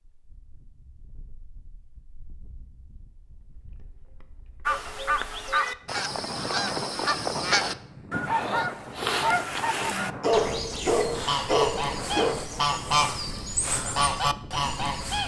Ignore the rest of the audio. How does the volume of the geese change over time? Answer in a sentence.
The volume of the geese stays about the same.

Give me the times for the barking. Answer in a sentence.
The barking can be heard from 10.2 to 12.4 s.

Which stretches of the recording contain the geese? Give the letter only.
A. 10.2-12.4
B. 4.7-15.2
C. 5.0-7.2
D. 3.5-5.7
B.